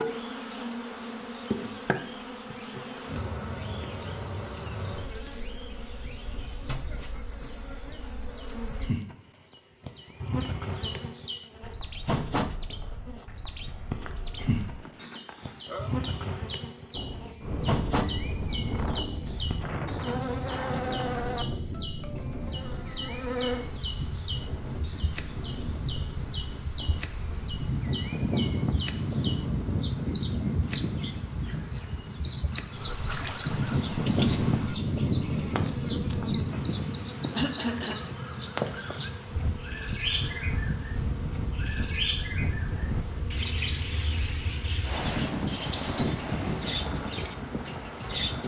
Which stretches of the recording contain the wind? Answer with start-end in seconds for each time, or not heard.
16.9-48.4.